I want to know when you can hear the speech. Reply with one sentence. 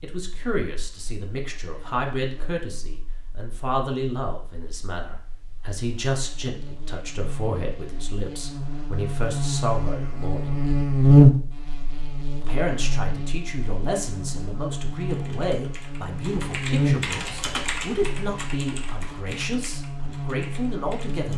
You can hear the speech from 0.0 to 10.6 s and from 12.4 to 21.3 s.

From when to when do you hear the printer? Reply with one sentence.
The printer can't be heard in this clip.